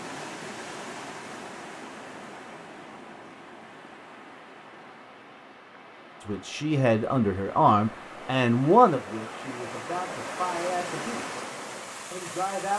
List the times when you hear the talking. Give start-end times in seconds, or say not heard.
6.2-11.3, 12.1-12.7.